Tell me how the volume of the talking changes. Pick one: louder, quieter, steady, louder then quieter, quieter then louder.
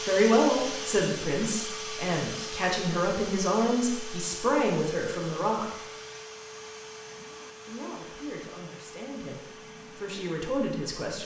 quieter then louder.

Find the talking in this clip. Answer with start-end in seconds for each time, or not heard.
0.0-5.8, 7.7-11.2.